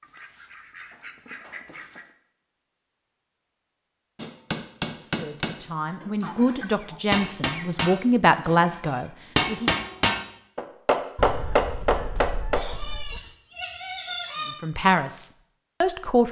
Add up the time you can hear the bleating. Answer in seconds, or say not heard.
2 s.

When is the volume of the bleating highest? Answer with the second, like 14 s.
14 s.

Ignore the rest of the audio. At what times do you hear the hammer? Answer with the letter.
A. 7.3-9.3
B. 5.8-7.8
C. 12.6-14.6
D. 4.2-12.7
D.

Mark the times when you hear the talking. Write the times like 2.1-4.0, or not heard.
5.2-9.8, 14.6-16.2.